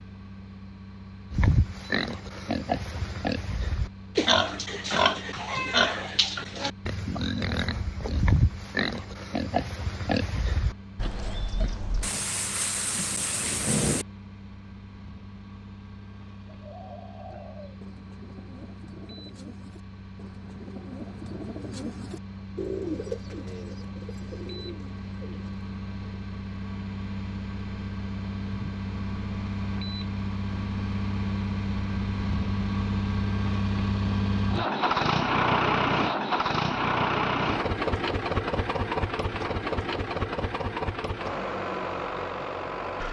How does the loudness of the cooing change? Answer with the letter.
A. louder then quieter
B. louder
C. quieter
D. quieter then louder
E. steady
A.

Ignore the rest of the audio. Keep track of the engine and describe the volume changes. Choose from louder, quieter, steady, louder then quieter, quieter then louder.
louder.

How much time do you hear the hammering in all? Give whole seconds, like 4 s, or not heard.
not heard.